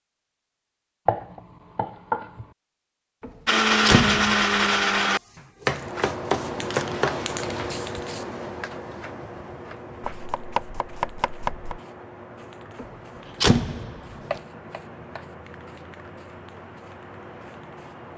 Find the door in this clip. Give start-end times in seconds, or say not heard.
3.2-4.5, 12.8-14.0.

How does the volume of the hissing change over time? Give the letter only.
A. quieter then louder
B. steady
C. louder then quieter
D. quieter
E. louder
D.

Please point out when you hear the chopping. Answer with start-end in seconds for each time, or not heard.
1.1-2.5, 5.3-7.2, 10.0-11.8, 14.3-15.2.